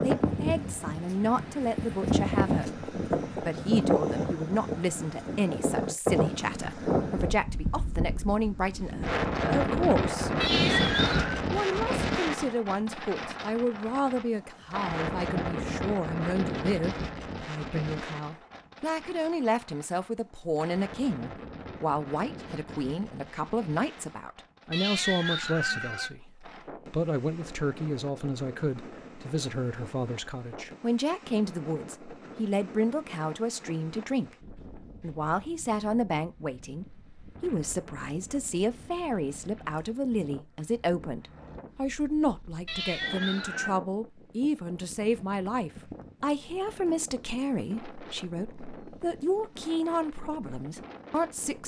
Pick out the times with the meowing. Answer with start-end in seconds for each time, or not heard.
10.4-11.4, 24.7-26.1, 42.6-43.8.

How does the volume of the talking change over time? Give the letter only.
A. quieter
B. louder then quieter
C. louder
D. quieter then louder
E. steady
E.